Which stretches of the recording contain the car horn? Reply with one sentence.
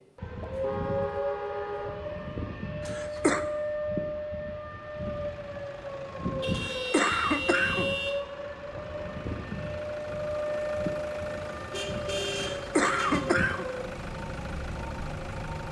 The car horn can be heard from 0.4 to 2.0 s, from 6.4 to 8.2 s and from 11.7 to 13.2 s.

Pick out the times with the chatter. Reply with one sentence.
You can't hear the chatter here.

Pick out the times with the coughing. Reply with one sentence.
The coughing can be heard from 2.8 to 3.5 s, from 6.5 to 8.0 s and from 12.6 to 13.7 s.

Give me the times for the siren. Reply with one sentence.
The siren can be heard from 0.0 to 15.6 s.